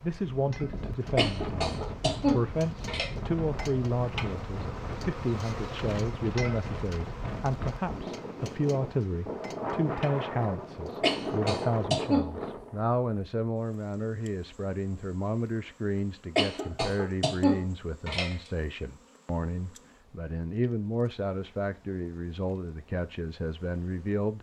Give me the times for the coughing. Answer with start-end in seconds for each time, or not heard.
1.1-3.1, 11.0-12.3, 16.4-18.4.